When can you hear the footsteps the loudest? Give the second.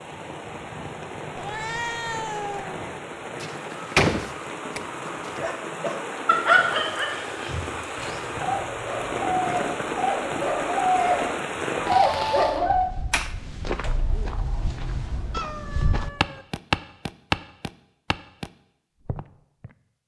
17 s.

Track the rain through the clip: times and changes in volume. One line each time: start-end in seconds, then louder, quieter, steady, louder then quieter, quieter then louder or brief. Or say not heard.
0.0-12.6 louder.